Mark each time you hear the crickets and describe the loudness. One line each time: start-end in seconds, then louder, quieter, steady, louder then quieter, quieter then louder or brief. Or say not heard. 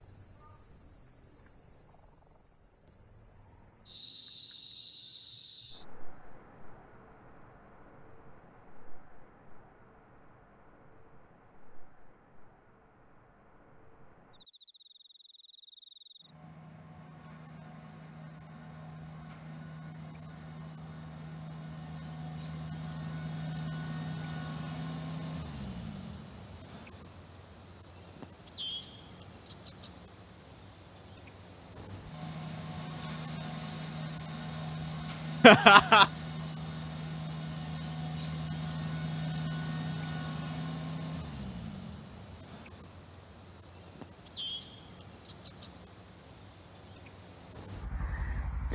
0.0-48.7 quieter then louder.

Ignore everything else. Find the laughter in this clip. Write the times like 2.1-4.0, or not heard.
35.4-36.0.